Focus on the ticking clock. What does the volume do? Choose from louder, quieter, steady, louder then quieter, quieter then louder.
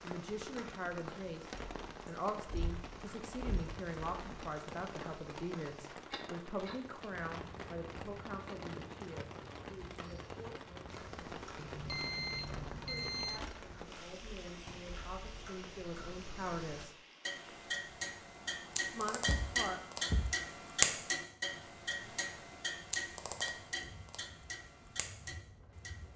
louder then quieter.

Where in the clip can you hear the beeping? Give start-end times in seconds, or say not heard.
11.6-13.4.